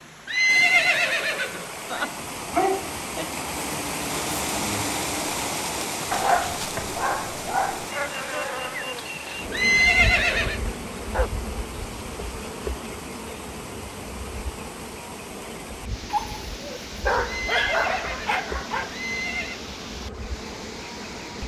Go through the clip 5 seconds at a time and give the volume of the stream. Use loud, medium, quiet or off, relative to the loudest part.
loud, loud, medium, medium, medium.